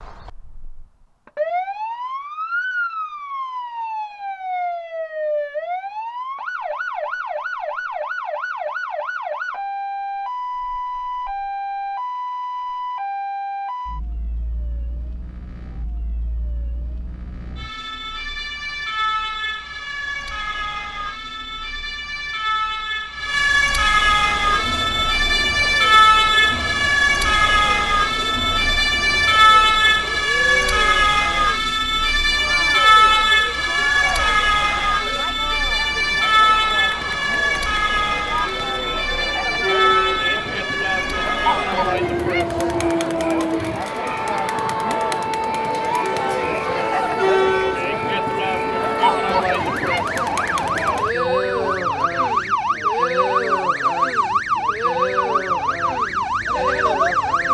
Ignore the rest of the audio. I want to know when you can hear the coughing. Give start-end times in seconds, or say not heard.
not heard.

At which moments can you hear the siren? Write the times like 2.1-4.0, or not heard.
0.0-57.4.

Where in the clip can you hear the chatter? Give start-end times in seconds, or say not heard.
24.2-57.4.